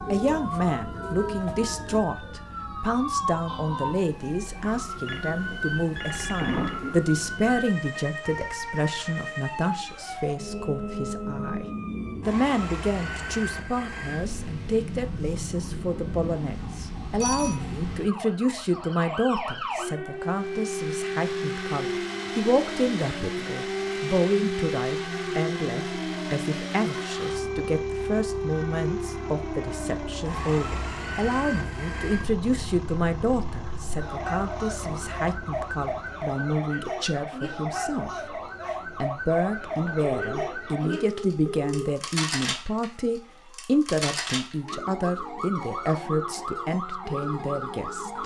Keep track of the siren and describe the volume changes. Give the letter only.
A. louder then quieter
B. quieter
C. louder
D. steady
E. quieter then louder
D.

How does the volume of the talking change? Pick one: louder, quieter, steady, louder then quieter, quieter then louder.
steady.